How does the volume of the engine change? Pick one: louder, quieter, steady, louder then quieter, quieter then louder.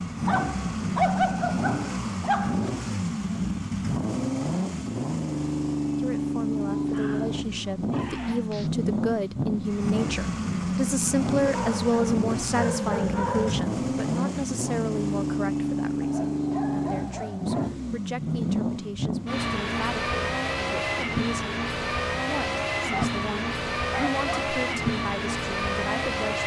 steady.